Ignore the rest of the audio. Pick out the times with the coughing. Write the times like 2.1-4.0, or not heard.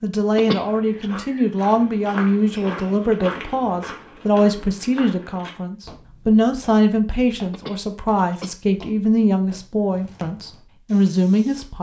0.3-1.2, 7.5-8.6.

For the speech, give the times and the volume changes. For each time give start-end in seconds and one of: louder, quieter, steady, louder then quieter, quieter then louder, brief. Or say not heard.
0.0-11.7 steady.